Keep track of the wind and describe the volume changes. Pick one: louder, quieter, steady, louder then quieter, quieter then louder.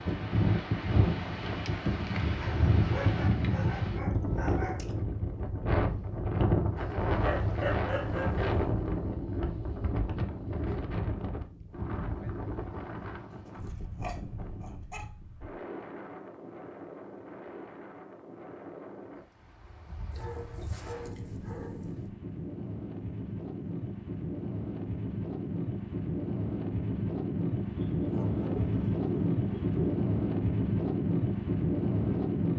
quieter then louder.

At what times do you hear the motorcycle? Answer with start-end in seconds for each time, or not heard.
7.9-10.9.